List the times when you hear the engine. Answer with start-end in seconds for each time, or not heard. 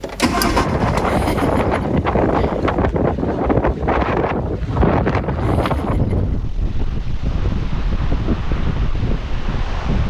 0.0-2.8.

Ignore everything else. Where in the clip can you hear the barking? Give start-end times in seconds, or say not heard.
not heard.